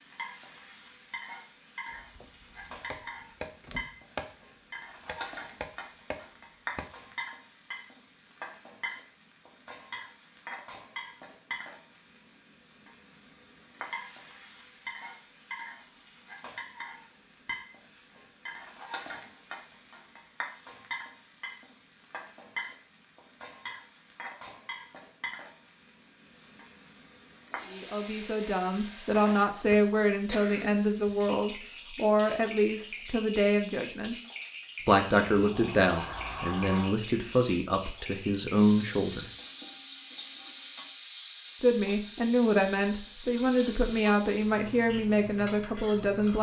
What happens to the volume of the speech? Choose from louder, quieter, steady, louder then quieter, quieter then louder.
steady.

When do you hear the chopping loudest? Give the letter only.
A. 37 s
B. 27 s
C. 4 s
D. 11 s
C.